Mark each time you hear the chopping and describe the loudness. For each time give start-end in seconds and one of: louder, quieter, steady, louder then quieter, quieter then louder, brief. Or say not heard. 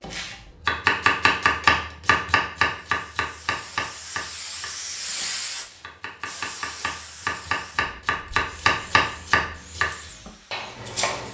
0.0-11.3 quieter then louder.